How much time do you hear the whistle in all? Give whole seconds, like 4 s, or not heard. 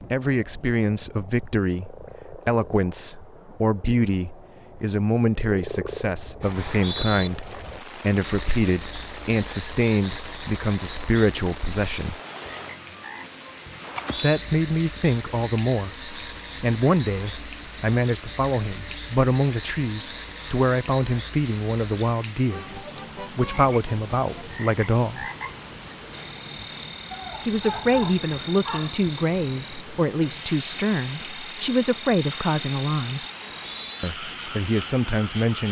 2 s.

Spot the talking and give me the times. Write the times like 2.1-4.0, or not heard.
0.1-12.2, 14.2-25.3, 27.4-33.2, 34.0-35.6.